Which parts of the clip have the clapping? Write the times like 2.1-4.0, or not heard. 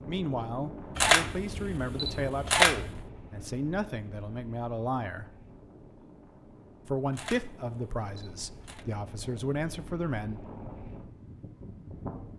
not heard.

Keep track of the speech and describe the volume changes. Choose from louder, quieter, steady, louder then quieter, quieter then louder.
steady.